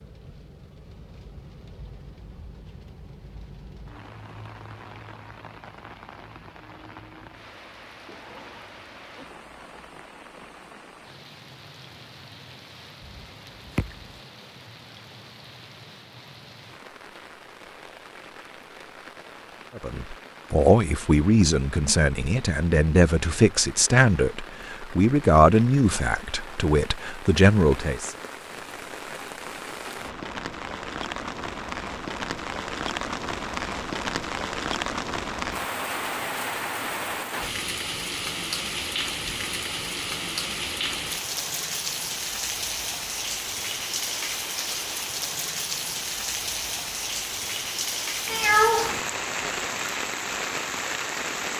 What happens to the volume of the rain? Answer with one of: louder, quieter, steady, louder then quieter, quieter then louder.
louder.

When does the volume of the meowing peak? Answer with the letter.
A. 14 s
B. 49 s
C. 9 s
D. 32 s
B.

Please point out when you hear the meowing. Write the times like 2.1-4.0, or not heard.
13.1-14.1, 48.2-49.0.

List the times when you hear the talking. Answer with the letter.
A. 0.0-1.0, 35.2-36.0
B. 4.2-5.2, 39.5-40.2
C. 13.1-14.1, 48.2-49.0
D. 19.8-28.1
D.